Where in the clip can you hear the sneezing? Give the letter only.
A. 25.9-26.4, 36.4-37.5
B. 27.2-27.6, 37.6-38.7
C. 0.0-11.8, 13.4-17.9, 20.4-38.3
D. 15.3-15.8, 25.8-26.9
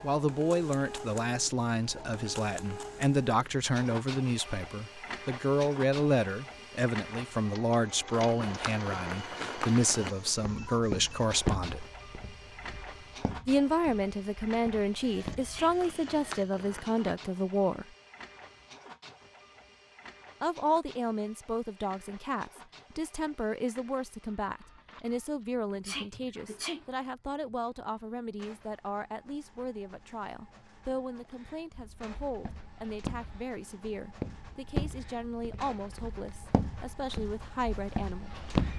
D.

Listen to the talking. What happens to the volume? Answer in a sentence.
The volume of the talking goes down.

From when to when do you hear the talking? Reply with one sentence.
The talking can be heard from 0.0 to 11.8 s, from 13.4 to 17.9 s and from 20.4 to 38.3 s.